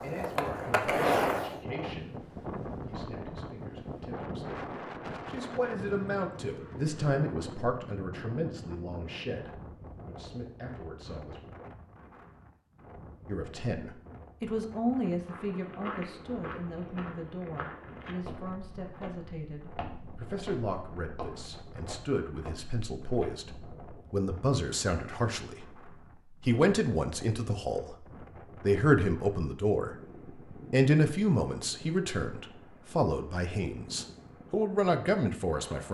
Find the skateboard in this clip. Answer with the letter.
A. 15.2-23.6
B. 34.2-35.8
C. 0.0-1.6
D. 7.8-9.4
C.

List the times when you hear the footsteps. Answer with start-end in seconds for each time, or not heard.
15.2-23.6.